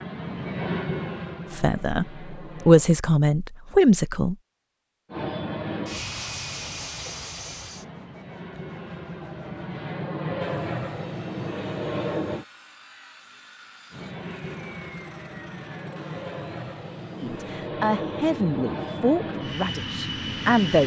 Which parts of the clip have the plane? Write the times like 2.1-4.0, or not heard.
0.0-2.9, 5.1-12.4, 13.9-20.8.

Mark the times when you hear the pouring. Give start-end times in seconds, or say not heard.
not heard.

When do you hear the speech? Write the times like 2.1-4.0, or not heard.
1.5-4.3, 17.1-20.8.